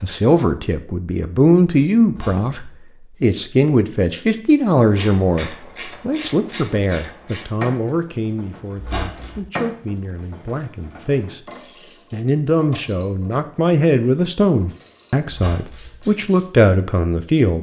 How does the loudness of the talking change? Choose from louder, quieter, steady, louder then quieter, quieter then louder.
quieter then louder.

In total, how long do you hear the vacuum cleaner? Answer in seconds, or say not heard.
not heard.